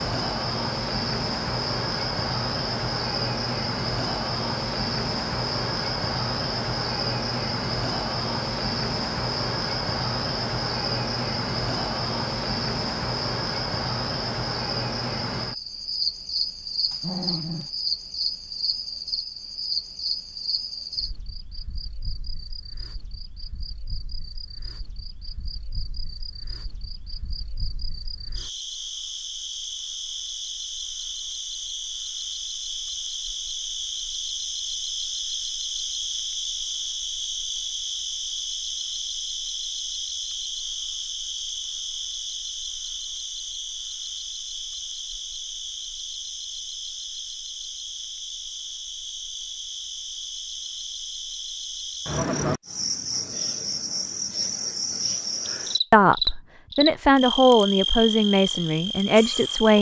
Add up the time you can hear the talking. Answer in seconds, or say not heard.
4 s.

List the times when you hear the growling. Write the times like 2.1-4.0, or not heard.
16.9-17.7.